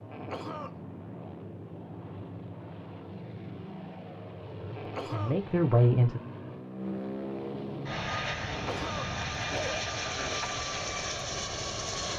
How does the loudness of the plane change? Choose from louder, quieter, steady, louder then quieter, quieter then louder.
louder.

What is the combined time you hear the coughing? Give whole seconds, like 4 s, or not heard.
3 s.